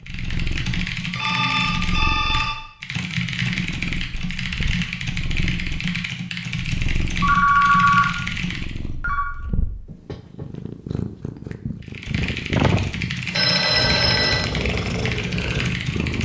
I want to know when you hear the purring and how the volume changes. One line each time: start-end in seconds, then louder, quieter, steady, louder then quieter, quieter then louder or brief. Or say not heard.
0.0-16.1 louder.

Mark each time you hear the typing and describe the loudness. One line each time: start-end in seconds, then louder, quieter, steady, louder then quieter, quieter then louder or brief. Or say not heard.
0.0-8.9 steady
11.8-16.1 steady.